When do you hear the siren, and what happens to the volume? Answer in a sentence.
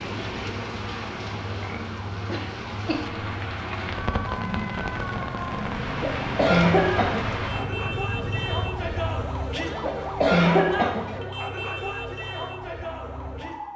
You can hear the siren from 0.0 to 13.7 s, getting louder.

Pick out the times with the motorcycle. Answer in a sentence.
You can hear the motorcycle from 0.0 to 9.4 s.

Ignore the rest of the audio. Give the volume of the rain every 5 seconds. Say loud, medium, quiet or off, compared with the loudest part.
loud, loud, off.